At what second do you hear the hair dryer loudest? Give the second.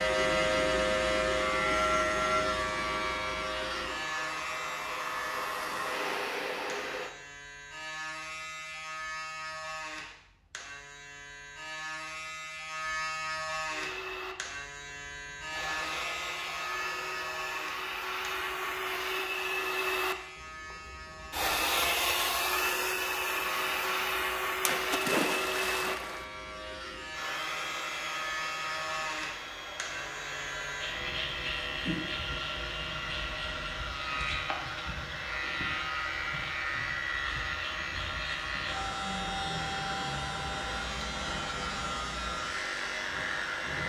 22 s.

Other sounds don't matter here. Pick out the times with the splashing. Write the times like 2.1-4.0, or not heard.
24.6-26.2.